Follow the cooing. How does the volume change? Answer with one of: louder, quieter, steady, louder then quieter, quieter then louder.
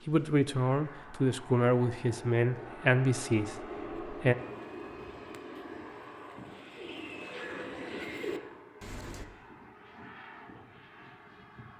louder.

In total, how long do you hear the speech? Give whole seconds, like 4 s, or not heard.
4 s.